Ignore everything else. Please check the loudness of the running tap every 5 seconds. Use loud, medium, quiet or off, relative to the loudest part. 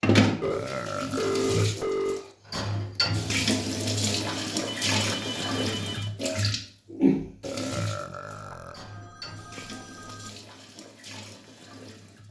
loud, loud, quiet.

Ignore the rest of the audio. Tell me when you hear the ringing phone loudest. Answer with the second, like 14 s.
1 s.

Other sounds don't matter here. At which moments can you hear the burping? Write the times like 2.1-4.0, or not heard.
0.4-1.6, 7.4-8.8.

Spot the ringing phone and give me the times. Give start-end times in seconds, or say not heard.
0.4-2.2, 4.2-6.1, 8.3-10.3.